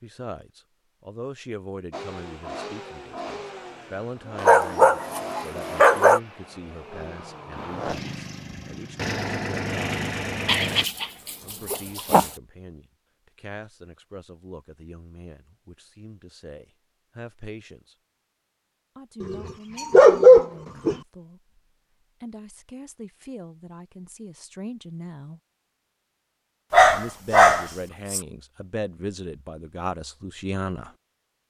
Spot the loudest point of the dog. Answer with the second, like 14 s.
20 s.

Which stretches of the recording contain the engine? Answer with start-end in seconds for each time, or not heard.
1.9-10.8.